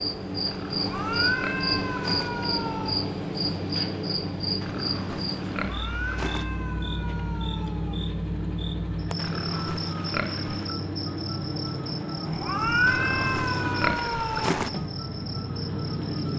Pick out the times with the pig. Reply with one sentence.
You can hear the pig from 0.5 to 2.3 s, from 4.6 to 6.5 s, from 9.2 to 10.8 s and from 12.8 to 14.7 s.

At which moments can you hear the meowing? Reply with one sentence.
The meowing can be heard from 0.7 to 3.0 s, from 5.6 to 8.1 s and from 12.2 to 14.6 s.